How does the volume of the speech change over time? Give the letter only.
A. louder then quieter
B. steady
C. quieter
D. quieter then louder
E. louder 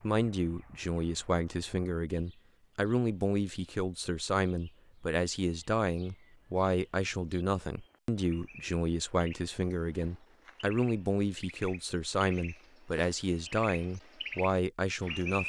B.